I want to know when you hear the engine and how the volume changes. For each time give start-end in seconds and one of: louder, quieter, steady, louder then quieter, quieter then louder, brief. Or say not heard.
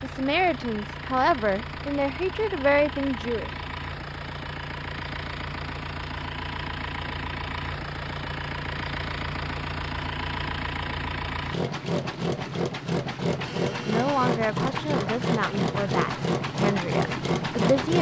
0.0-17.9 louder.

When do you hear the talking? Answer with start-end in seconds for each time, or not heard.
0.0-3.5, 13.8-17.9.